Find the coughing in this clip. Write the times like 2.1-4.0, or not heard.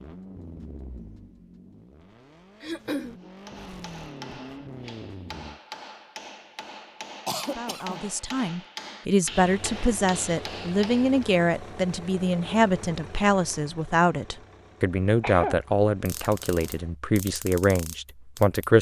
2.6-3.1, 7.2-8.1, 15.2-15.6.